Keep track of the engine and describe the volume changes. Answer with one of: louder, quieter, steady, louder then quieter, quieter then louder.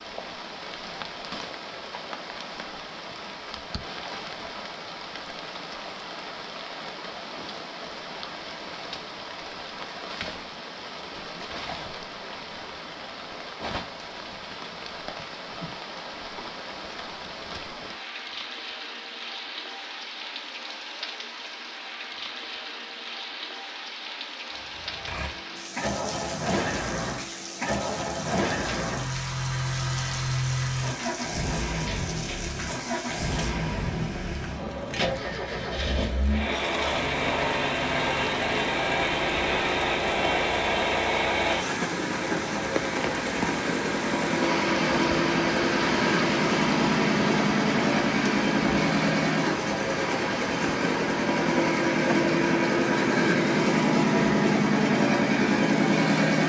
louder.